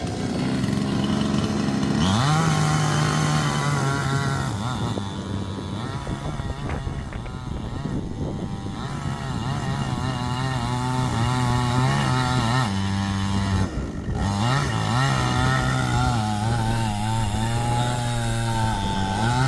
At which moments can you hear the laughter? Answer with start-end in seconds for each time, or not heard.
not heard.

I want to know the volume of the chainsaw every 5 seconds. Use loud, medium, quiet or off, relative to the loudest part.
loud, medium, loud, loud.